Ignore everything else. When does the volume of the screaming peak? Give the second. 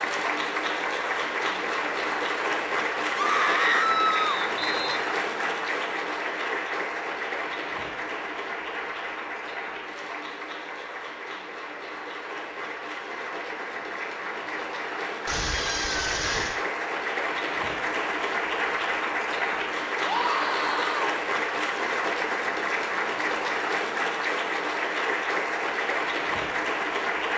4 s.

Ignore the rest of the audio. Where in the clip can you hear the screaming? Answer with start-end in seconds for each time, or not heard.
3.1-4.3, 15.2-16.6, 20.0-21.1.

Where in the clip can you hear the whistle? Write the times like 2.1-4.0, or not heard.
4.1-5.0.